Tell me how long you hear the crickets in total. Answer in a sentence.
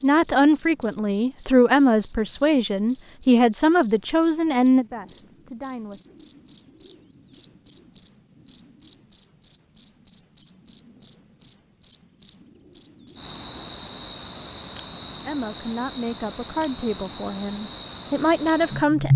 The crickets can be heard for 19 seconds in total.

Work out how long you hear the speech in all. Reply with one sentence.
You can hear the speech for 10 seconds altogether.